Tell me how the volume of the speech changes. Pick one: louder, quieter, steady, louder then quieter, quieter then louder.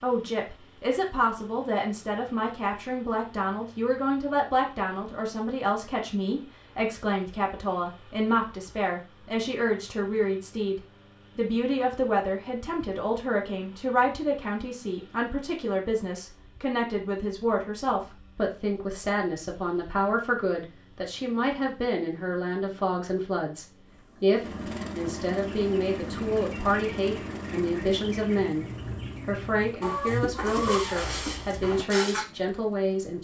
steady.